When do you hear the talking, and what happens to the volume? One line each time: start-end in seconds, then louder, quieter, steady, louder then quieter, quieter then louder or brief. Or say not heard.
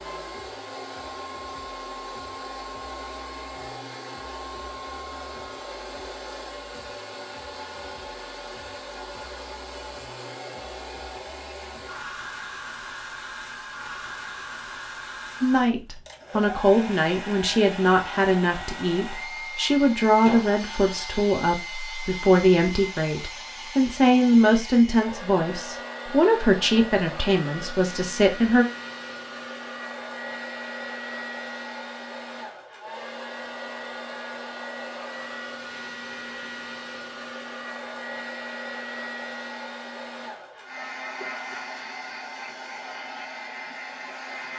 15.4-28.6 steady.